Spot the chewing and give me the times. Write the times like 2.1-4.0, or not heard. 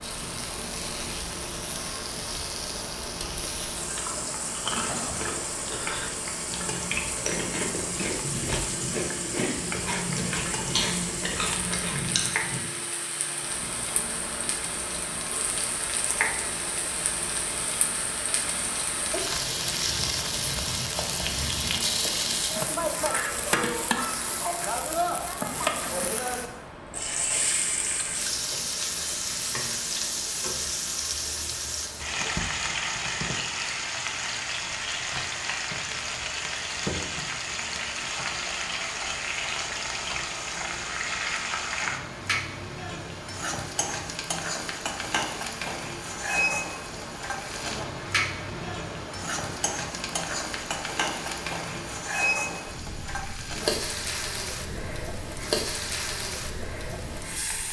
3.8-12.6.